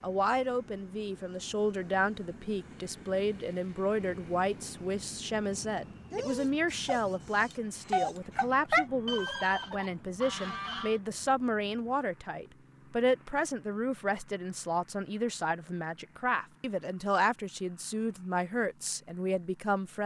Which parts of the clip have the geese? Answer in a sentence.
You can hear the geese from 9.1 to 11.0 s.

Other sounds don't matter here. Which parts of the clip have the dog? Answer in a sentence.
The dog can be heard from 6.1 to 8.8 s.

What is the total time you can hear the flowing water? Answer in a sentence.
You can't hear the flowing water here.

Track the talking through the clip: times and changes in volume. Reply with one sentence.
The talking can be heard from 0.0 to 20.0 s, at a steady volume.